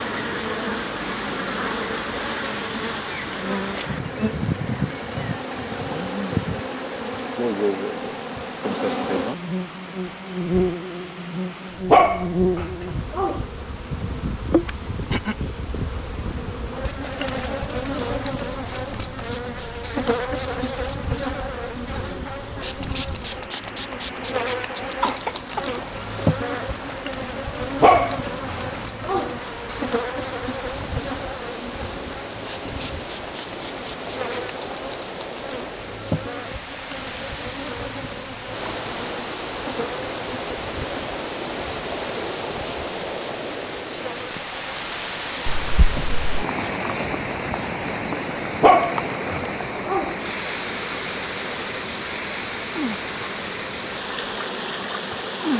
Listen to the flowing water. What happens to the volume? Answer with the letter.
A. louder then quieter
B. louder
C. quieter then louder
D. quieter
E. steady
B.